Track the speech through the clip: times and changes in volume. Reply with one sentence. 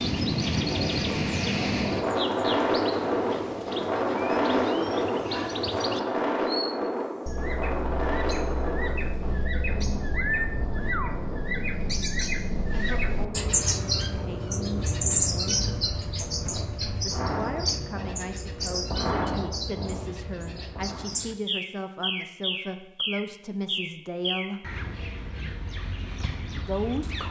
You can hear the speech briefly from 12.7 to 15.7 s; from 17.0 to 24.7 s, at a steady volume; and briefly from 26.5 to 27.2 s.